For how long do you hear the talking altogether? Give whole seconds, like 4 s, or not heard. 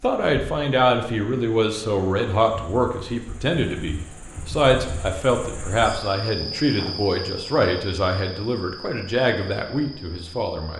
11 s.